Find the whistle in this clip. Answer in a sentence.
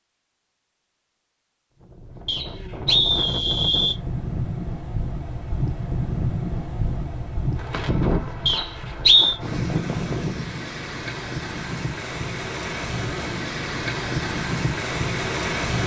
You can hear the whistle from 2.2 to 4.0 s and from 8.4 to 9.3 s.